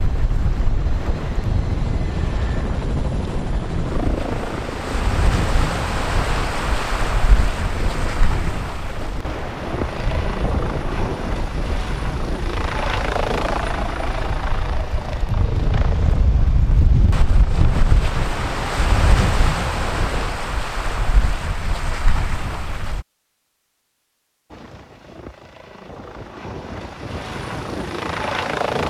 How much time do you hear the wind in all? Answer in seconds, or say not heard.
23 s.